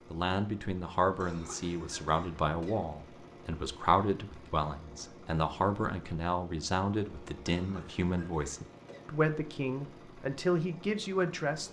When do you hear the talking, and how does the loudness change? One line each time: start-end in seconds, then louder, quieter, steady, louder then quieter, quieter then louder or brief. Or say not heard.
0.1-11.6 steady.